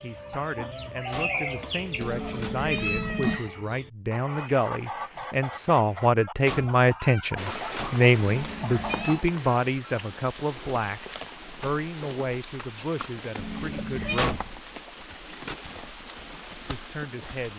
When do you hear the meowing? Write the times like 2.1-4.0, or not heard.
2.0-3.4, 8.2-9.2, 13.3-14.2.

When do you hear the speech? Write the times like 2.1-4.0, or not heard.
0.0-14.4, 16.6-17.5.